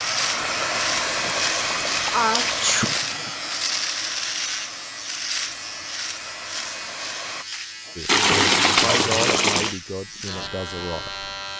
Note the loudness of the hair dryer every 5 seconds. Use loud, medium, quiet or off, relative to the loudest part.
loud, medium, off.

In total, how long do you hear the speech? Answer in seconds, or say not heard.
3 s.